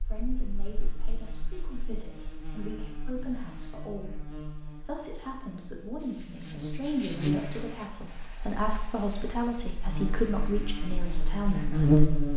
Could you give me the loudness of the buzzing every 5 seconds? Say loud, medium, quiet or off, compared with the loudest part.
quiet, medium, loud.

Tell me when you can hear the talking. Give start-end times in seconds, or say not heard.
0.0-12.1.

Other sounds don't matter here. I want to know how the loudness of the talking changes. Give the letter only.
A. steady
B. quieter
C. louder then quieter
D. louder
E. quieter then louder
D.